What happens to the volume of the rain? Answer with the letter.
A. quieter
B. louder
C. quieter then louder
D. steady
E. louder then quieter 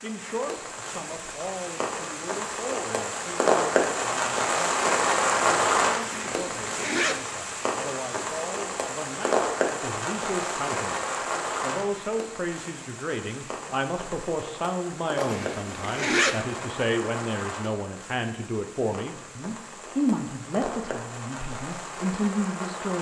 A.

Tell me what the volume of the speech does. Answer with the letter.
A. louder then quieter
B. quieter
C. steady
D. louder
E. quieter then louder
D.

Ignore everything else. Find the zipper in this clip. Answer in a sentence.
The zipper can be heard from 6.0 to 7.2 s and from 15.2 to 16.4 s.